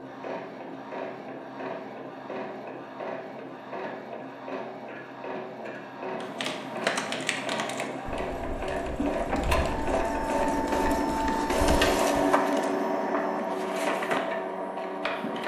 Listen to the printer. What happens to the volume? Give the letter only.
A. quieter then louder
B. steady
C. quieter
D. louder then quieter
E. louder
E.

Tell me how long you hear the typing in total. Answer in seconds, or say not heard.
6 s.